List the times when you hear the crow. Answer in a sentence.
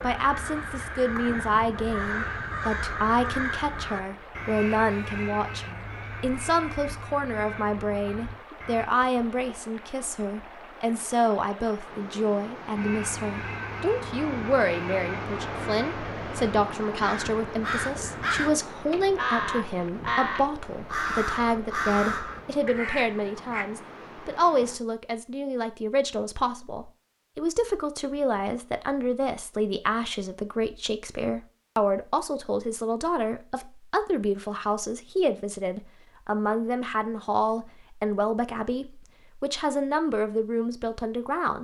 The crow can be heard from 0.0 to 8.8 s and from 12.8 to 23.6 s.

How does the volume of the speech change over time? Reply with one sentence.
The loudness of the speech stays about the same.